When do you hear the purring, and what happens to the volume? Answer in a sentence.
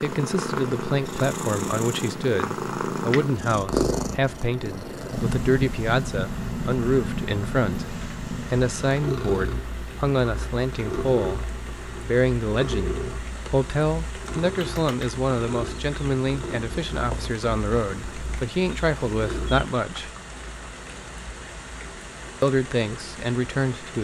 You can hear the purring from 0.0 to 19.6 s, getting quieter.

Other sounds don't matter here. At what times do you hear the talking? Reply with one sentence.
The talking can be heard from 0.0 to 20.1 s and from 22.4 to 24.0 s.